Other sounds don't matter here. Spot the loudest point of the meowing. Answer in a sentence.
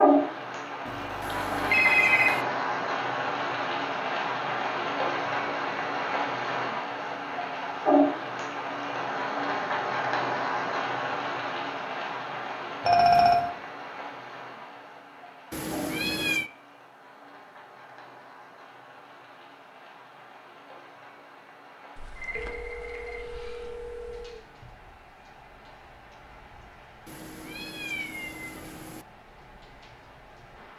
The volume of the meowing peaks at 16 seconds.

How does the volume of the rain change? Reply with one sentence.
The loudness of the rain goes down.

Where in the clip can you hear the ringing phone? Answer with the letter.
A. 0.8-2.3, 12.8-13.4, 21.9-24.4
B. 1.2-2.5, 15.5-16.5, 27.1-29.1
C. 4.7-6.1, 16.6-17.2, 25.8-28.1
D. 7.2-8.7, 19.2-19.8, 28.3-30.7
A.